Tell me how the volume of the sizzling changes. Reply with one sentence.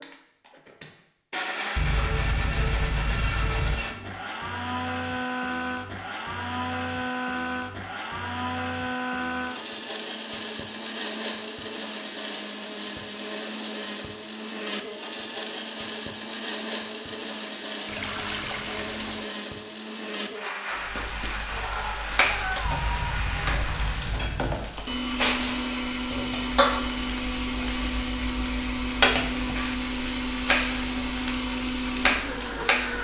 The loudness of the sizzling stays about the same.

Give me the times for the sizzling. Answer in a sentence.
You can hear the sizzling from 20.7 to 32.9 s.